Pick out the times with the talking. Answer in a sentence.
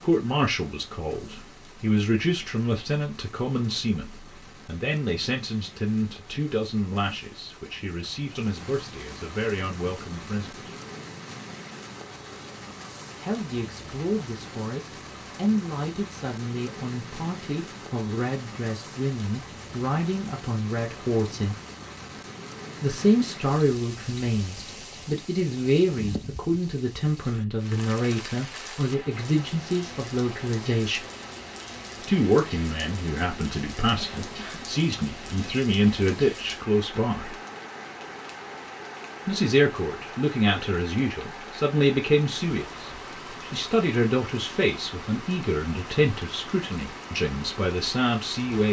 The talking can be heard from 0.0 to 10.7 s, from 13.2 to 21.6 s, from 22.8 to 31.1 s, from 32.0 to 37.4 s and from 39.2 to 48.6 s.